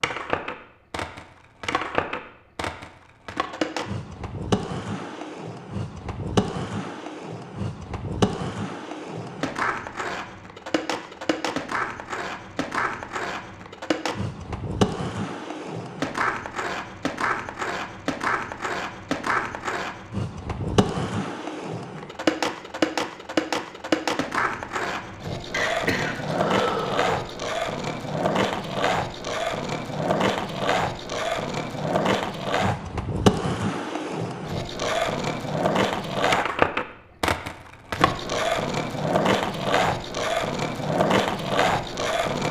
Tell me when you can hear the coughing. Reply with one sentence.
You can hear the coughing from 25.5 to 27.2 s.